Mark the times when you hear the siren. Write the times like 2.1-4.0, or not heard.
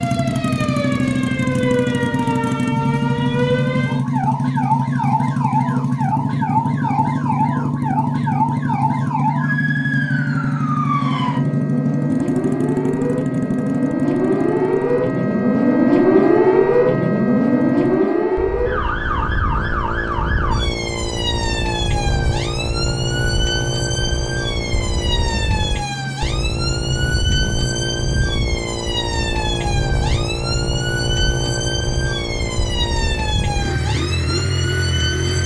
0.0-35.4.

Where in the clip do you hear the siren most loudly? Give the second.
16 s.